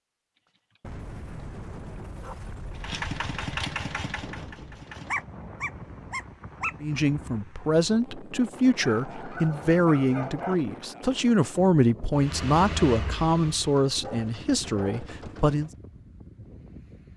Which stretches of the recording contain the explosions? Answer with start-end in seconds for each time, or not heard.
0.8-4.8.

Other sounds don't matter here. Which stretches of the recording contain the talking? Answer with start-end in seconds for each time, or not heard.
6.8-15.7.